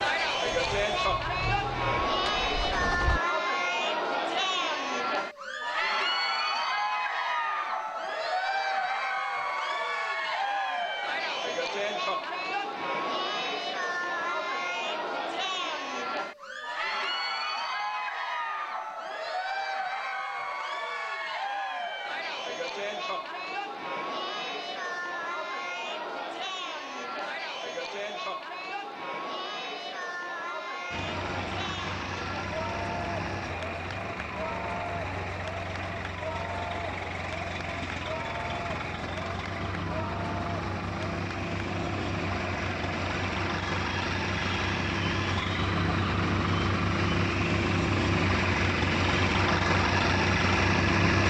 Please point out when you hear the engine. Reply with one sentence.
You can hear the engine from 0.0 to 3.2 s and from 30.9 to 51.2 s.